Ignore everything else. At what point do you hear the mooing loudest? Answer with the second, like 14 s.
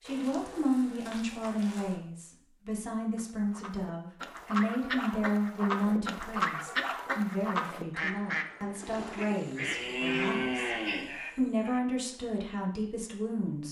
10 s.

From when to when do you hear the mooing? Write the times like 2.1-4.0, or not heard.
0.0-2.0, 9.6-11.2.